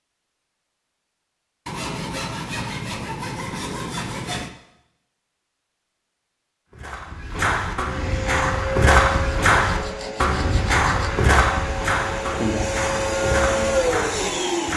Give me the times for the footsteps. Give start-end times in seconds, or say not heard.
6.7-14.7.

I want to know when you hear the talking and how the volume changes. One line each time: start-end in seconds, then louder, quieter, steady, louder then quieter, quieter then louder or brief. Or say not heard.
not heard.